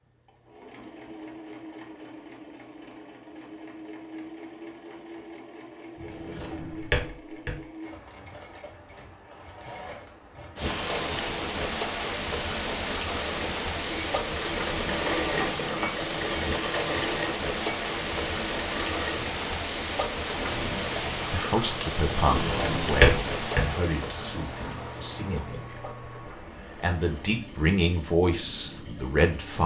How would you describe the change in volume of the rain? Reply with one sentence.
The loudness of the rain goes down.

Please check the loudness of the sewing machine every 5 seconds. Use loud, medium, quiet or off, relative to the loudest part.
medium, medium, medium, loud, medium, quiet.